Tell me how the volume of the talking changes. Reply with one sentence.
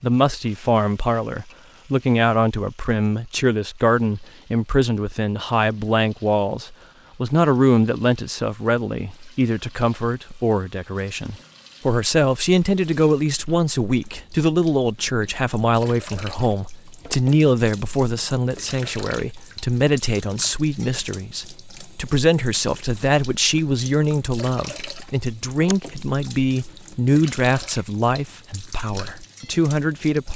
The loudness of the talking stays about the same.